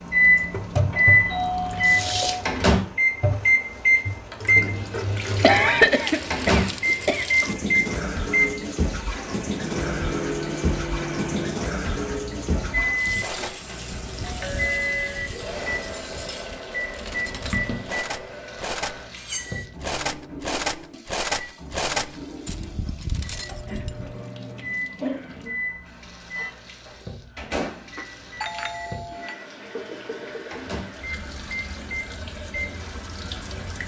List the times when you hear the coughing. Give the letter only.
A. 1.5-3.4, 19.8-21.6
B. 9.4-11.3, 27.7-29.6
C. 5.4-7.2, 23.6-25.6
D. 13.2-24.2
C.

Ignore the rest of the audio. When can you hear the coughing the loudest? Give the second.
6 s.